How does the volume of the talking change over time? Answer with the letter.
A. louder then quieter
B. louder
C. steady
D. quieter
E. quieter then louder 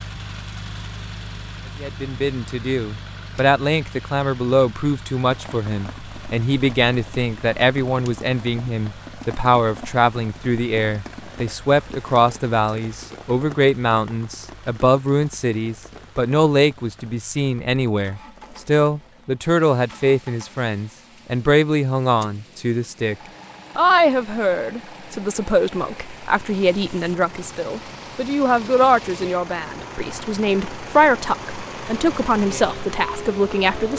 C.